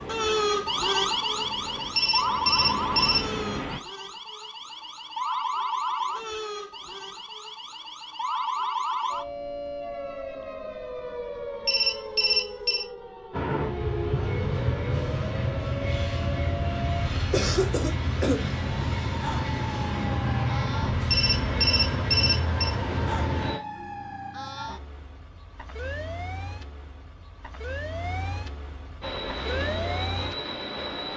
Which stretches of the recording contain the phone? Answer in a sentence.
The phone can be heard from 1.9 to 3.3 s, from 11.7 to 12.8 s and from 21.1 to 22.8 s.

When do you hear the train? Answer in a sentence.
The train can be heard from 0.0 to 3.8 s, from 13.3 to 23.6 s and from 29.0 to 31.1 s.